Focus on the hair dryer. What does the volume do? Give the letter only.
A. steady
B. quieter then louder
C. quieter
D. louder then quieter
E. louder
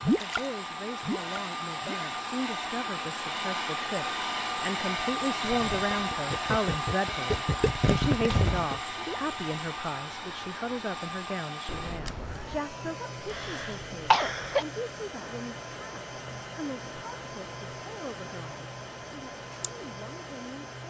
C.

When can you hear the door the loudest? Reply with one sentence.
The volume of the door peaks at 8 seconds.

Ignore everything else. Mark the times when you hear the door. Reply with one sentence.
The door can be heard from 7.3 to 8.7 s and from 11.7 to 12.6 s.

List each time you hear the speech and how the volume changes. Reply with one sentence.
The speech can be heard from 0.1 to 20.6 s, getting louder then quieter.